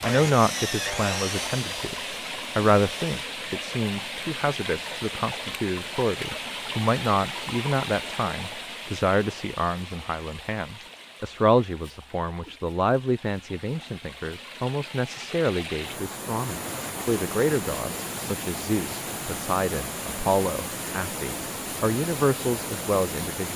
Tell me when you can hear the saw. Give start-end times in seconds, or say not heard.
0.0-3.2.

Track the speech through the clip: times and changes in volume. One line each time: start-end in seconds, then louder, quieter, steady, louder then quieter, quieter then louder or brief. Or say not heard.
0.0-1.9 brief
2.5-23.5 steady.